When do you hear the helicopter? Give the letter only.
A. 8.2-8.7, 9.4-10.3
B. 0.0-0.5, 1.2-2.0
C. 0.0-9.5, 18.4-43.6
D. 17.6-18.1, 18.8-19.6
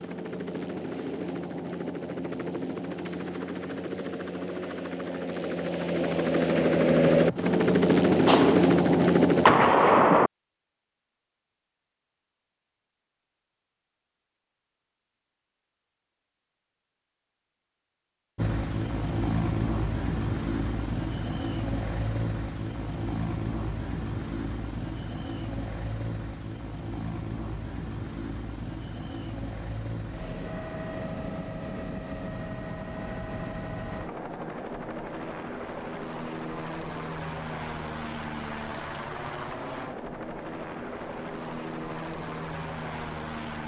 C.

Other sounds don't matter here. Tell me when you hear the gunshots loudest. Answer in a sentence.
The volume of the gunshots peaks at 10 seconds.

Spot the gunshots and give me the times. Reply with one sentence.
The gunshots can be heard from 8.2 to 8.7 s and from 9.4 to 10.3 s.